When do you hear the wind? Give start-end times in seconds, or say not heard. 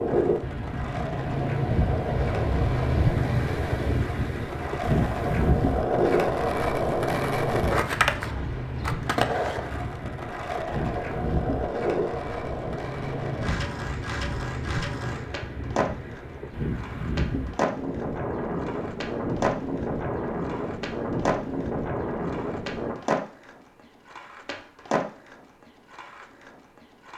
0.0-22.9.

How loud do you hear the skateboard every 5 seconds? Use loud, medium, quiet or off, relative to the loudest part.
medium, loud, medium, medium, medium, quiet.